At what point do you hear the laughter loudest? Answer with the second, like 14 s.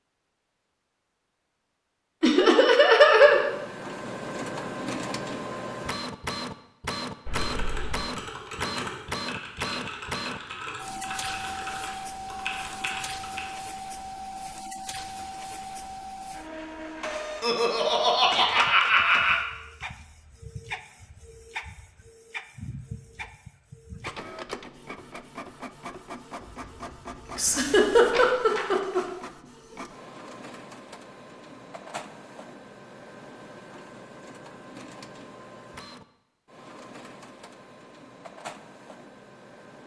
3 s.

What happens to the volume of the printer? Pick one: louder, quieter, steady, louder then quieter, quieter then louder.
quieter.